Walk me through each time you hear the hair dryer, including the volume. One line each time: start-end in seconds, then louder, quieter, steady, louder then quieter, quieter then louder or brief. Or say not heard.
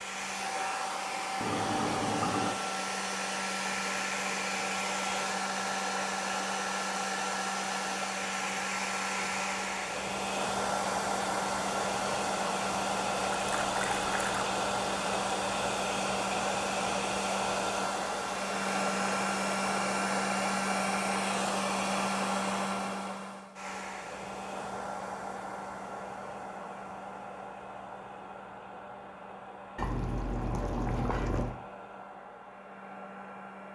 0.0-33.7 quieter.